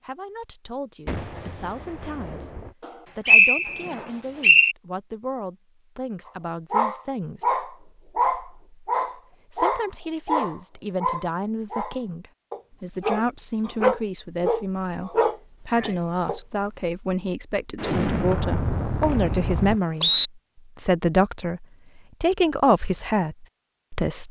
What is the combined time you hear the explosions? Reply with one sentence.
The explosions can be heard for 4 seconds in total.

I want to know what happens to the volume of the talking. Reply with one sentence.
The volume of the talking goes up.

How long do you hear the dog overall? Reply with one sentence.
The dog can be heard for 10 seconds in total.